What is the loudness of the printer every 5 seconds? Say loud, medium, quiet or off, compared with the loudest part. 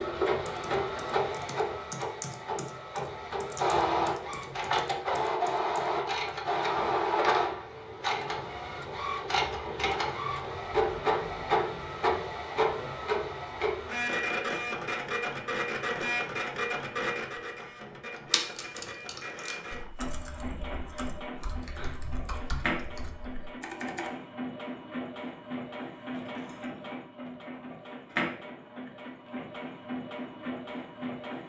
loud, loud, loud, medium, medium, medium, medium.